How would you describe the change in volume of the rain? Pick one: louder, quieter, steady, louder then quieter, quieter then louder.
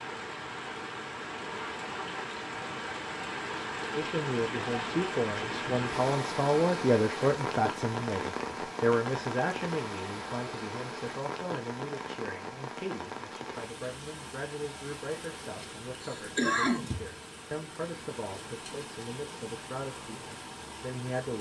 quieter.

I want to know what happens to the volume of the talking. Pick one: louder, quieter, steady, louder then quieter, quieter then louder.
quieter.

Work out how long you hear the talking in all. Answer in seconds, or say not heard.
17 s.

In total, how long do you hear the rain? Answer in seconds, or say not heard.
21 s.